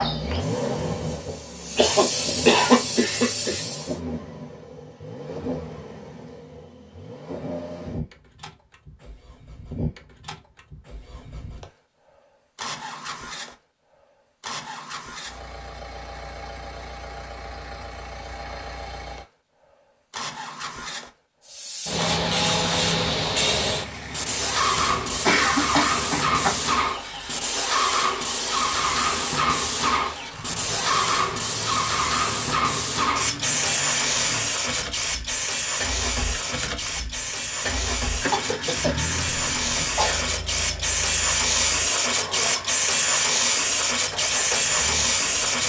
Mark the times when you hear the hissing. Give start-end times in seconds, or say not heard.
0.0-4.0, 21.4-45.6.